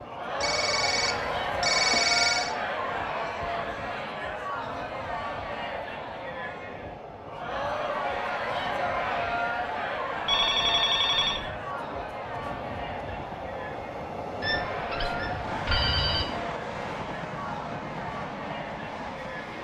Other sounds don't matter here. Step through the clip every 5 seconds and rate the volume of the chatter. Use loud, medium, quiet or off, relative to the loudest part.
loud, loud, medium, medium.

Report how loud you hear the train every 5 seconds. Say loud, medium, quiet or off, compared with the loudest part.
medium, medium, loud, loud.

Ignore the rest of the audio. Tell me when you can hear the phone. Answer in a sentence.
The phone can be heard from 0.4 to 2.5 s, from 10.2 to 11.4 s and from 14.4 to 16.2 s.